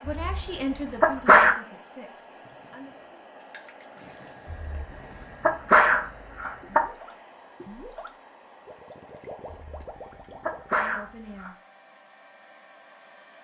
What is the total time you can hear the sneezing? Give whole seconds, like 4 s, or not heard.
6 s.